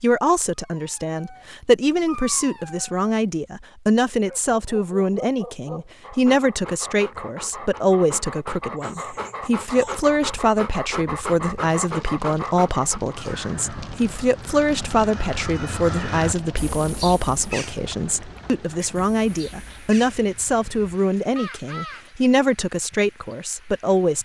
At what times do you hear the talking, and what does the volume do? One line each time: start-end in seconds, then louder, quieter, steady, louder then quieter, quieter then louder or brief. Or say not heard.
0.0-24.2 steady.